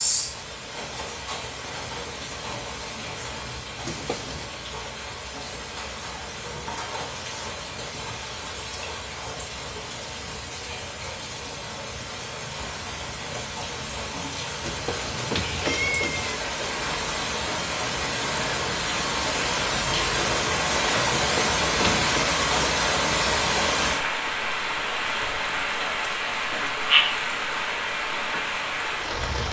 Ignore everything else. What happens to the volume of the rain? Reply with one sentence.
The loudness of the rain goes up.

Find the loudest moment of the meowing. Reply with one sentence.
The volume of the meowing peaks at 16 seconds.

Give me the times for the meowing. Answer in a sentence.
The meowing can be heard from 3.8 to 4.5 s, from 14.6 to 16.4 s and from 21.1 to 22.1 s.